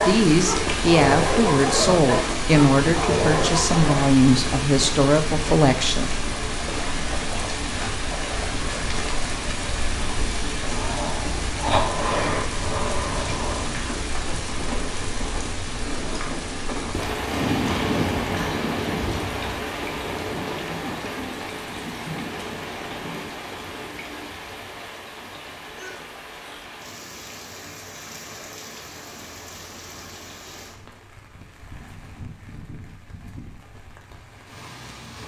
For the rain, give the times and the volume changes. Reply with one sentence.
You can hear the rain from 0.0 to 35.2 s, getting quieter.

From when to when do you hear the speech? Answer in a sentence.
The speech can be heard from 0.0 to 6.1 s.